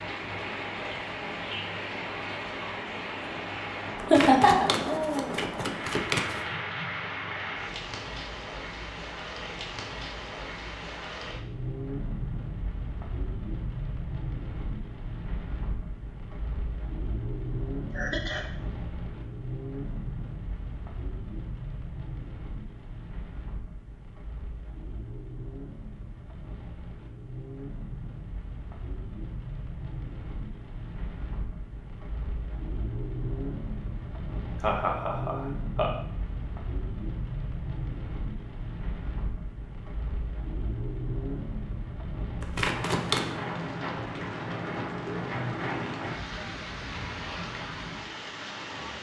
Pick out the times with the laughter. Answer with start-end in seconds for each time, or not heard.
4.1-4.7, 17.9-18.4, 34.6-35.9.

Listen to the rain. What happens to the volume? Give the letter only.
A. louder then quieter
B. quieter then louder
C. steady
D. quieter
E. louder
B.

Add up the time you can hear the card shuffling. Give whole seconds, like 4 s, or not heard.
3 s.